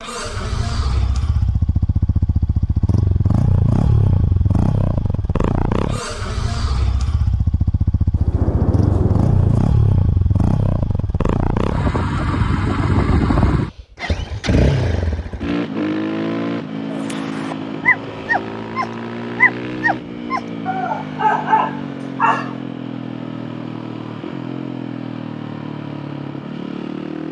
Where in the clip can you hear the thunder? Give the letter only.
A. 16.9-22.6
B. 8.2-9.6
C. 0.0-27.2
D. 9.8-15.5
B.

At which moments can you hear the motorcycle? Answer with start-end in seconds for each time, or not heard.
0.0-27.2.